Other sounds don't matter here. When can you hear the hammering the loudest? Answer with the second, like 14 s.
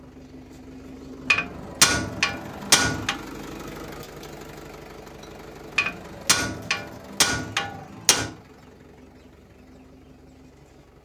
2 s.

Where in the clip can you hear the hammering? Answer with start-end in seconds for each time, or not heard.
1.2-3.1, 5.8-8.3.